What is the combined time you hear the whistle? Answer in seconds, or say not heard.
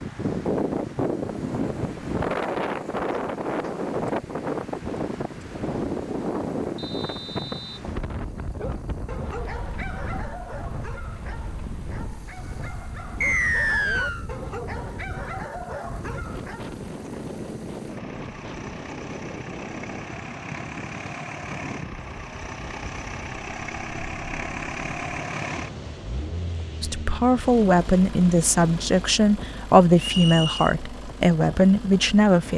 3 s.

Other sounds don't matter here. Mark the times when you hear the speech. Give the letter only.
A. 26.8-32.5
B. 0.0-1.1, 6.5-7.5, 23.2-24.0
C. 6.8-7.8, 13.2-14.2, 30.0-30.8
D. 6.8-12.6
A.